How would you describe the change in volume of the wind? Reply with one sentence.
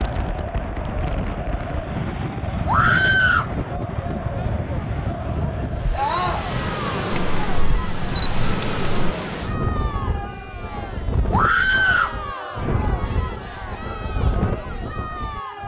The volume of the wind stays about the same.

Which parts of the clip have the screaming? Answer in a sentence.
You can hear the screaming from 2.6 to 3.5 s, from 5.9 to 6.5 s and from 11.3 to 12.2 s.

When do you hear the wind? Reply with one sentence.
You can hear the wind from 0.0 to 15.6 s.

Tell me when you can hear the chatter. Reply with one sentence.
You can hear the chatter from 0.0 to 15.6 s.